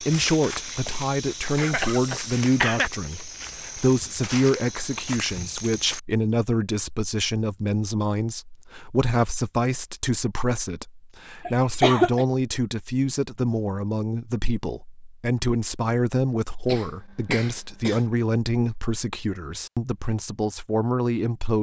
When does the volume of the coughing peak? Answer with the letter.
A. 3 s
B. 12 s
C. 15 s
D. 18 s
B.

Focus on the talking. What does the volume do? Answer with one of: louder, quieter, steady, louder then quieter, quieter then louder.
steady.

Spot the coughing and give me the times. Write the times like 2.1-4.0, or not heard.
1.6-2.9, 11.4-12.2, 16.6-18.1.